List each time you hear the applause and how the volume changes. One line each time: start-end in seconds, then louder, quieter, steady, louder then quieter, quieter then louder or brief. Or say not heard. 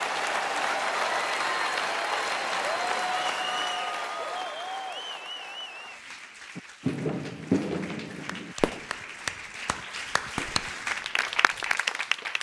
0.0-12.3 quieter then louder.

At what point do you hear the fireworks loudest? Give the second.
8 s.